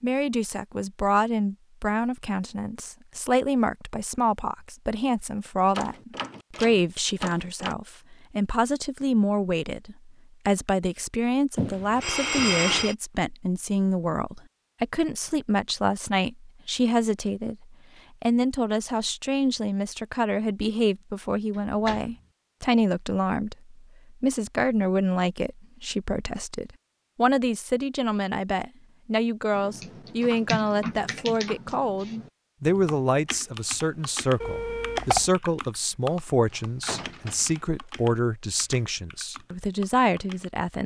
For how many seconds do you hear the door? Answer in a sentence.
The door can be heard for 4 seconds in total.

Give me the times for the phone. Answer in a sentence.
The phone can be heard from 11.6 to 12.9 s and from 34.4 to 35.3 s.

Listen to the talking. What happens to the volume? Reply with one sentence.
The volume of the talking stays about the same.